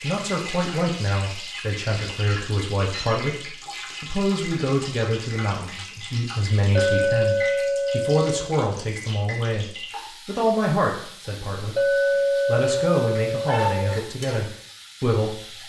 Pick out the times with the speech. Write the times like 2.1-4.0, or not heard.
0.0-15.4.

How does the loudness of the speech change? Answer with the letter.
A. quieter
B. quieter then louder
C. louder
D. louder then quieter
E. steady
E.